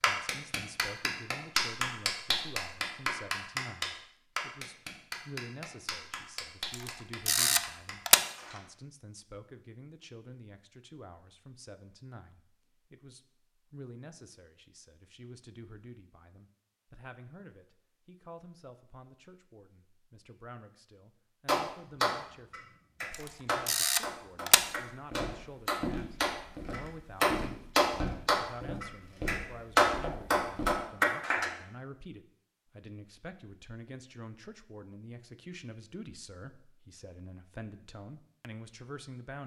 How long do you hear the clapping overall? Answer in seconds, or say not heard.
19 s.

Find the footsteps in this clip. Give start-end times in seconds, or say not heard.
24.6-30.8.